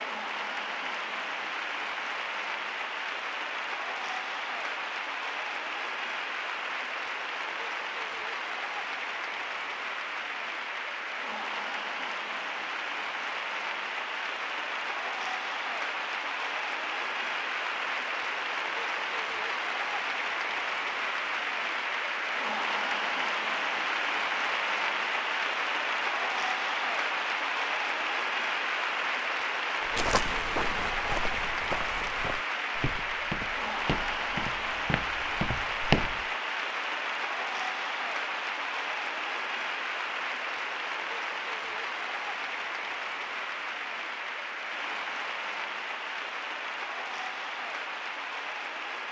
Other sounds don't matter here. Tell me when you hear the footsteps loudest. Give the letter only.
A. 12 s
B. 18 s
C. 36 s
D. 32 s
C.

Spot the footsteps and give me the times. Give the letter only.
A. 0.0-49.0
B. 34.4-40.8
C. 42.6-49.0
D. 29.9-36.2
D.